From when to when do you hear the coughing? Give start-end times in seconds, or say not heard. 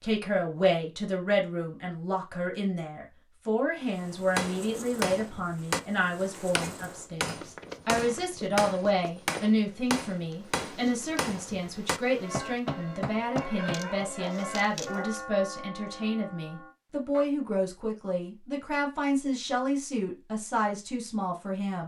not heard.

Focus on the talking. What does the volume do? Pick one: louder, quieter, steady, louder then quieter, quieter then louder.
steady.